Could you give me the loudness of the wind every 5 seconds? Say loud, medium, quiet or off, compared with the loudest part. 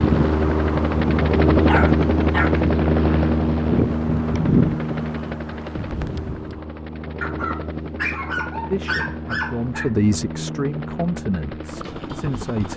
loud, medium, off.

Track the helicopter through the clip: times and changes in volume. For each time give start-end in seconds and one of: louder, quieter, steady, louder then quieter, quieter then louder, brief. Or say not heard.
0.0-12.7 quieter.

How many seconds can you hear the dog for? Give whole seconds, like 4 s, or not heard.
4 s.